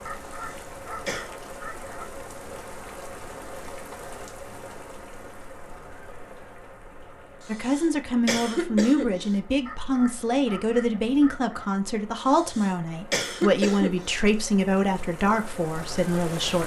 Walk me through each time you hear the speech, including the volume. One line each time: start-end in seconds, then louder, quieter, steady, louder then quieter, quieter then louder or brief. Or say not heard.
7.5-16.6 steady.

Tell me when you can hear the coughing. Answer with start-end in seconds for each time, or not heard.
0.3-1.3, 7.4-9.3, 12.2-14.2.